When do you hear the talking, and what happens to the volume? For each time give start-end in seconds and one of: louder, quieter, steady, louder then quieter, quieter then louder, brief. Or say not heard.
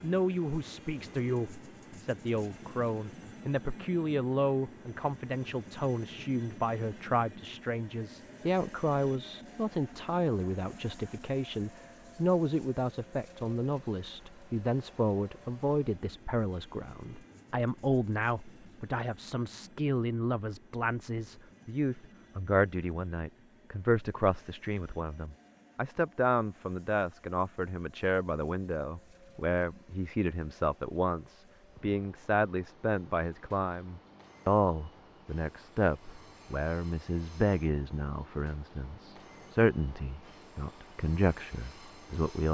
0.0-42.4 steady.